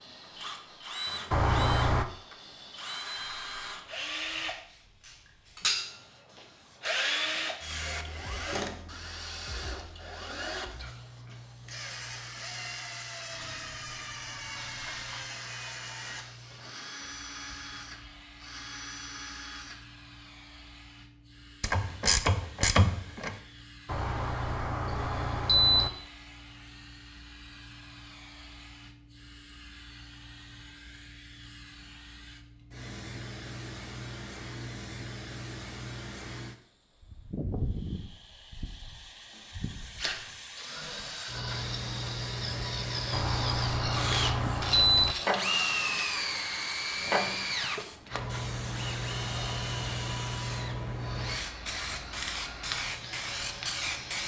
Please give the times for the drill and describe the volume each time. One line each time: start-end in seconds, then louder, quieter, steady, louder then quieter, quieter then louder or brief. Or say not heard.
0.0-19.8 louder then quieter
39.3-54.2 louder then quieter.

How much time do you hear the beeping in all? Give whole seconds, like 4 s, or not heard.
5 s.